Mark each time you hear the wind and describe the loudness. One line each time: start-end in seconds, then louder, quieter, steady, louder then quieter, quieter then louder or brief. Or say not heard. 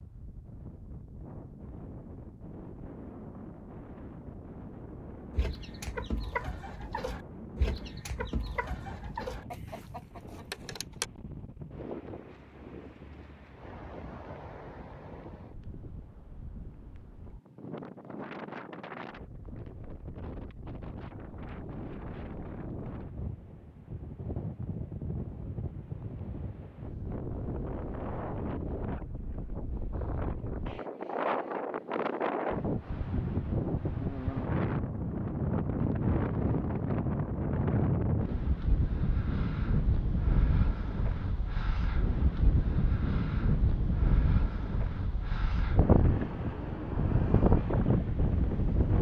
0.0-48.9 louder.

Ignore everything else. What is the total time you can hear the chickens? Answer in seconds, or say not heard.
6 s.